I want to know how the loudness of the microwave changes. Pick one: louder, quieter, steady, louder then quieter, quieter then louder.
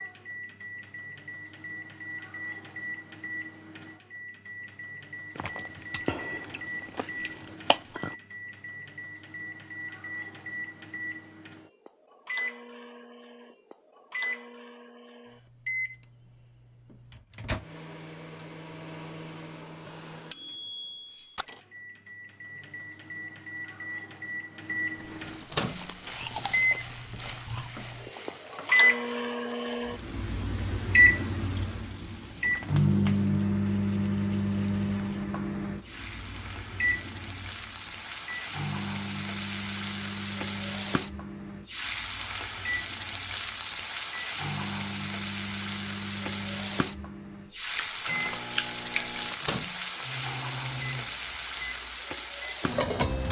louder then quieter.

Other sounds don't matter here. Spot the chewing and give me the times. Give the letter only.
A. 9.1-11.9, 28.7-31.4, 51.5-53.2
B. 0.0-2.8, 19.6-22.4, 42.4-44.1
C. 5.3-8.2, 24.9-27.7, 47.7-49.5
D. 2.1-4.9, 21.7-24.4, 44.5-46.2
C.